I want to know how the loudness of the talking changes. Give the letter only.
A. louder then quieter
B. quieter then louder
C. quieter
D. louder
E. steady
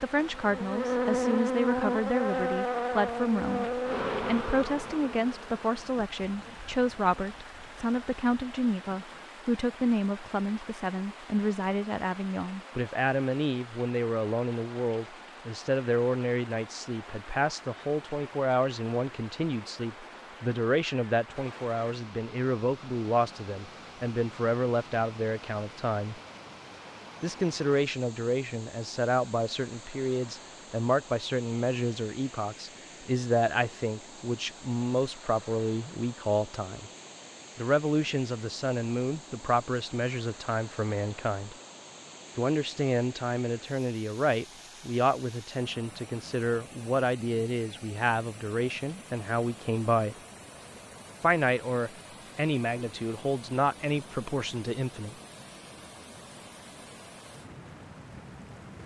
E.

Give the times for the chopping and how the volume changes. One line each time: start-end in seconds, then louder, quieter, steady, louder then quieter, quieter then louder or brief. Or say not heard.
not heard.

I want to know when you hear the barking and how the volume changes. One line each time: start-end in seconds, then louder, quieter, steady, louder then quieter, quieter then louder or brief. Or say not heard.
not heard.